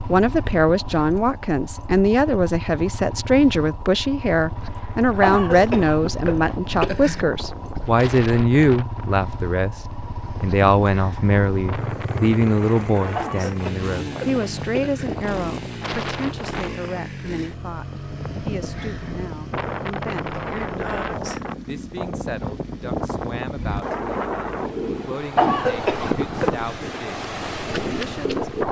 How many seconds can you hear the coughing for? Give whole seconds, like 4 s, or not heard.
5 s.